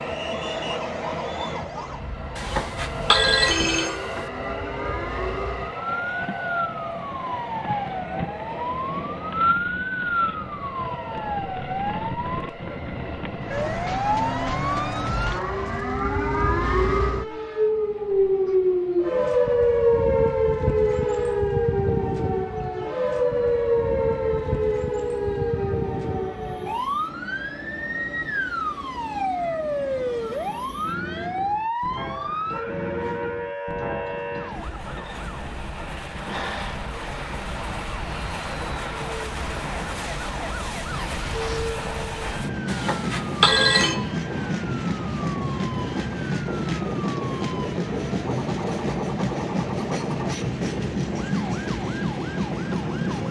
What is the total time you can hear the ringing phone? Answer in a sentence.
The ringing phone can be heard for 3 seconds in total.